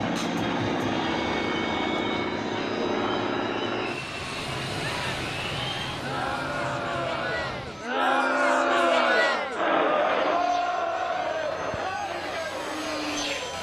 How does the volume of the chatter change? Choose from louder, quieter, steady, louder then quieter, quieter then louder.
louder then quieter.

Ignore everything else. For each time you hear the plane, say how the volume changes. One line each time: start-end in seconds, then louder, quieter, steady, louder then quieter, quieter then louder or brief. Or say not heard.
0.0-13.5 quieter then louder.